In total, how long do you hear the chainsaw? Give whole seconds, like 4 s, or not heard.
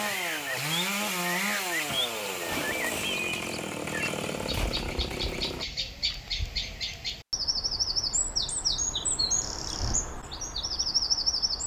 6 s.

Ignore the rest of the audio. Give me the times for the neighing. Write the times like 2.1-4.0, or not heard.
not heard.